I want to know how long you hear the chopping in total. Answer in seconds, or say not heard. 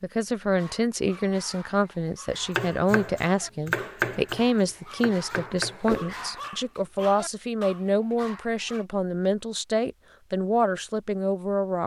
4 s.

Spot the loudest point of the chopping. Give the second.
4 s.